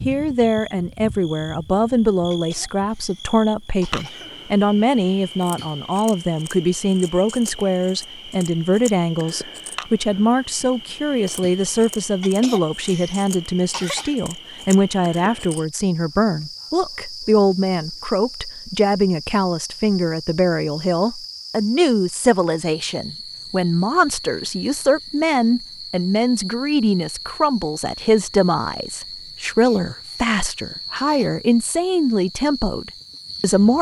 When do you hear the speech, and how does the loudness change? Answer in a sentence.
The speech can be heard from 0.1 to 33.7 s, at a steady volume.